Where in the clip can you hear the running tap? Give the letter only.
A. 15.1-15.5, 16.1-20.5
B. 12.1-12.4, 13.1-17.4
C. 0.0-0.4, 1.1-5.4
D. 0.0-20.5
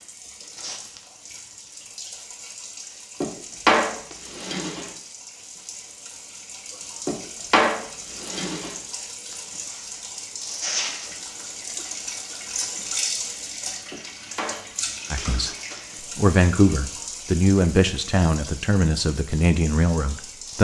D.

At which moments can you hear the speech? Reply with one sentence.
The speech can be heard from 15.1 to 15.5 s and from 16.1 to 20.5 s.